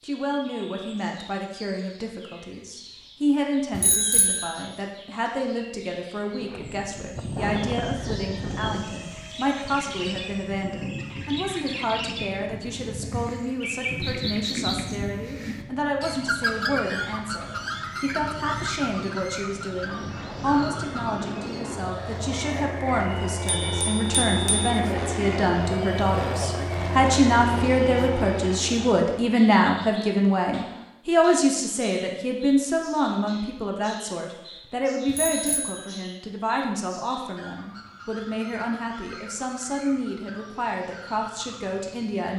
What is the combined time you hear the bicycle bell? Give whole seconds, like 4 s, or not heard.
3 s.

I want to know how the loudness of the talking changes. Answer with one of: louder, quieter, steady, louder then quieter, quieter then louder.
louder then quieter.